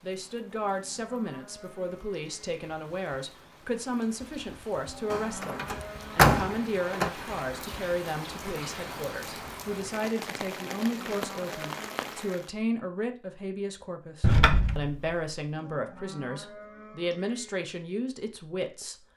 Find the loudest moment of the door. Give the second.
6 s.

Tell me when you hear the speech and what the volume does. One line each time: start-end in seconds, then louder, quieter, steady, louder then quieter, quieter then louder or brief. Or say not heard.
0.0-19.1 steady.